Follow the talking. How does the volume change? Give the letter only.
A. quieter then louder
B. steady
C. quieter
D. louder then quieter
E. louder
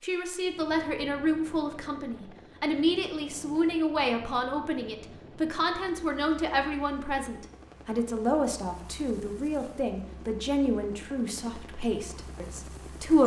B.